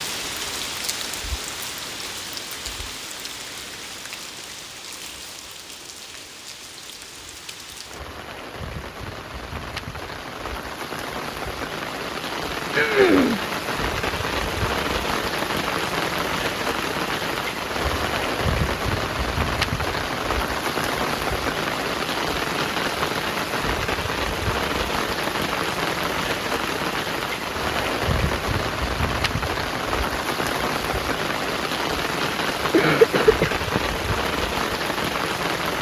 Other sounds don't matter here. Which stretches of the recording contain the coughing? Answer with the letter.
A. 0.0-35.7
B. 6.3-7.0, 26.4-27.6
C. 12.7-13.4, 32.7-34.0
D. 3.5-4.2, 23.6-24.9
C.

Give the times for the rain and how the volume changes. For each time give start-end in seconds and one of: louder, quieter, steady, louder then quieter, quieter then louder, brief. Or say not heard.
0.0-35.7 louder.